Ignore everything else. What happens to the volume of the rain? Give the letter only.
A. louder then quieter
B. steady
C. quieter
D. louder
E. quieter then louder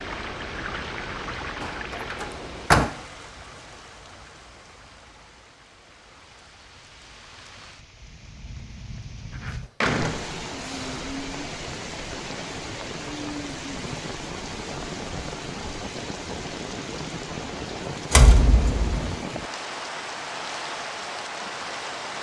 E.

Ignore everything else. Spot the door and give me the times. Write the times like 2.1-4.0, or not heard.
1.6-2.9, 9.3-11.2, 18.1-19.1.